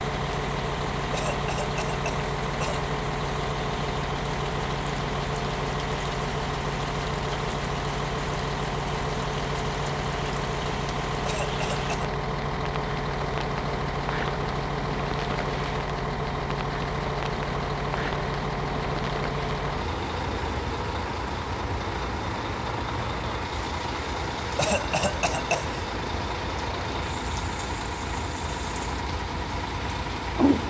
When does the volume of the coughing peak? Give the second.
25 s.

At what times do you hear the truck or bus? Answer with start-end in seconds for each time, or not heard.
0.0-30.6.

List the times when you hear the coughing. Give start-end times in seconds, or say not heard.
1.1-2.8, 11.2-12.1, 24.6-25.8.